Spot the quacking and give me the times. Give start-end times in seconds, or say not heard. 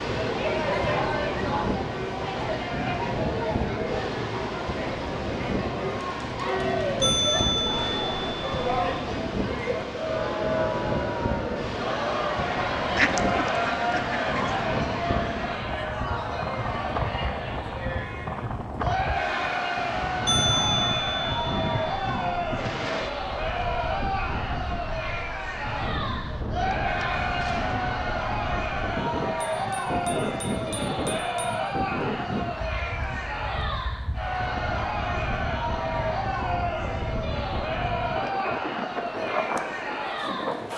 12.9-14.7.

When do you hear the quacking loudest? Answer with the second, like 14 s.
13 s.